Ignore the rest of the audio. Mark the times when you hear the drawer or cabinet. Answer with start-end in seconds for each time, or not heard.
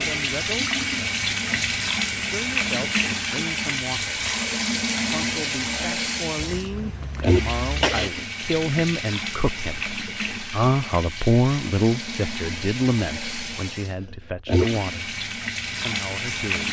not heard.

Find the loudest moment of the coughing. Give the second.
8 s.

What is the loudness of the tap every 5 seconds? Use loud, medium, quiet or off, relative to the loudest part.
loud, loud, medium, loud.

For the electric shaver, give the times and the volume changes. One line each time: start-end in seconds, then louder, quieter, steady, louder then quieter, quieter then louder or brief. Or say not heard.
not heard.